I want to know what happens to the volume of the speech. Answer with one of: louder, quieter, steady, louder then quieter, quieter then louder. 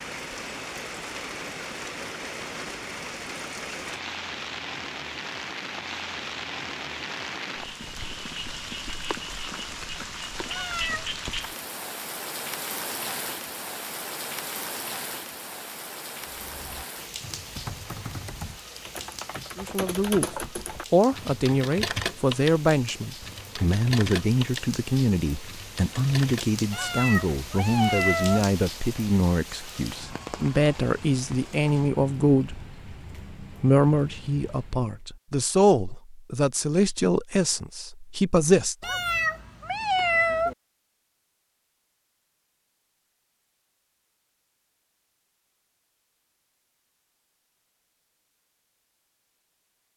steady.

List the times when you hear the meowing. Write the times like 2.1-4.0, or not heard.
10.4-11.2, 26.7-28.4, 38.8-40.5.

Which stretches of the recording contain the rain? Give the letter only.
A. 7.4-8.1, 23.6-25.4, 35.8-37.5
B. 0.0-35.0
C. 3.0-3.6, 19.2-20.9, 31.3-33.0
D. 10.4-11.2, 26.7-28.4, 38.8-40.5
B.